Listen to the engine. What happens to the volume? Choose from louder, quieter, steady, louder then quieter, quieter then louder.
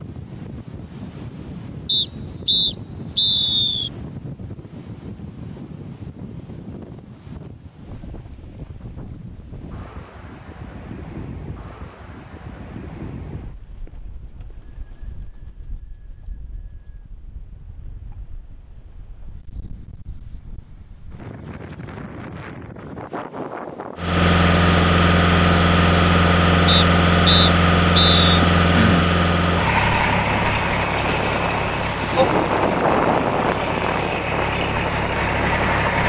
quieter.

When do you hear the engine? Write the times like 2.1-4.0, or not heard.
23.9-36.0.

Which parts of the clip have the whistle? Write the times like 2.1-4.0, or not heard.
1.9-3.9, 26.6-28.2.